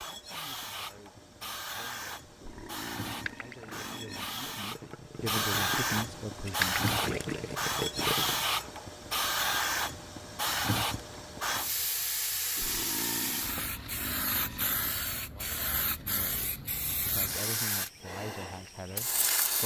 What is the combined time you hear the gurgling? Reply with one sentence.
The gurgling can be heard for 5 seconds in total.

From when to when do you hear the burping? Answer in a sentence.
The burping can be heard from 2.4 to 4.7 s and from 12.6 to 14.9 s.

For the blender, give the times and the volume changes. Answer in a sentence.
You can't hear the blender here.